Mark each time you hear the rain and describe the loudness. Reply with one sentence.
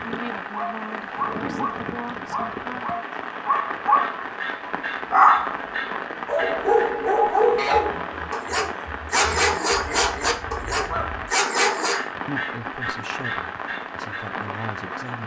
You can hear the rain from 0.0 to 15.2 s, at a steady volume.